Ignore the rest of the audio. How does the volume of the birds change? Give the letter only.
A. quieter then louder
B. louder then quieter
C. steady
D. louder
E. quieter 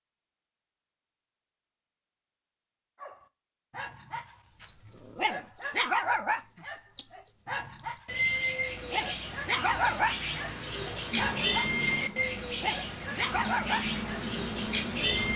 D.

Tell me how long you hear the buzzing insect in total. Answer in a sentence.
The buzzing insect can be heard for 4 seconds in total.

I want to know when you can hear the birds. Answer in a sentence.
You can hear the birds from 4.5 to 15.3 s.